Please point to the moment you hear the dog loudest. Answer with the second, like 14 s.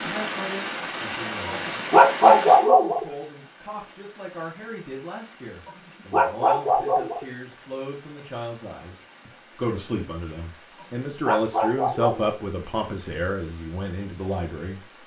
2 s.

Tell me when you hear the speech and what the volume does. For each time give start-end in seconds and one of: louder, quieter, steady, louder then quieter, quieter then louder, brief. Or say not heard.
0.0-15.0 louder.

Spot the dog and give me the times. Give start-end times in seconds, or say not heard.
1.4-3.0, 5.7-7.2, 10.8-12.3.